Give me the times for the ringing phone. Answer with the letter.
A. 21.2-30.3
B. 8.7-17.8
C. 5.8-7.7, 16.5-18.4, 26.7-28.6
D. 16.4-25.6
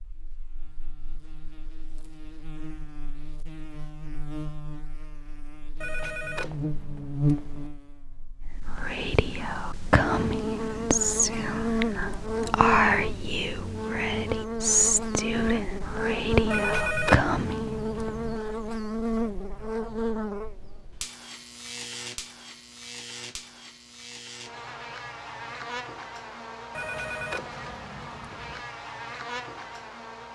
C.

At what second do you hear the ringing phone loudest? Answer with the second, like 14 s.
17 s.